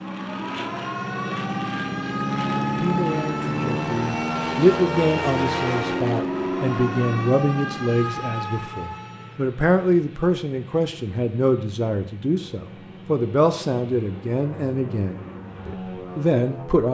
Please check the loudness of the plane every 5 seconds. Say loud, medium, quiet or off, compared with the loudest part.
loud, loud, quiet, medium.